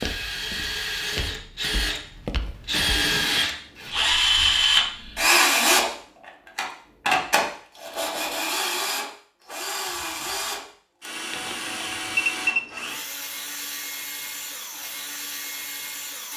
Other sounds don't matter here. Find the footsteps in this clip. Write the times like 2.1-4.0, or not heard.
0.0-3.5.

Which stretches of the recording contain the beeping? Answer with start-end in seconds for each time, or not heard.
11.3-12.8.